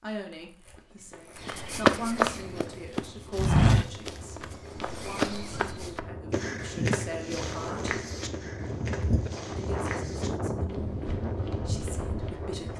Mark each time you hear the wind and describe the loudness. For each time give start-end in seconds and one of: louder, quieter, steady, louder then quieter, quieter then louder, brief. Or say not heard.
2.5-12.7 louder.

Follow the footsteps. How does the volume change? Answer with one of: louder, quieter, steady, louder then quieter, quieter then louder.
quieter.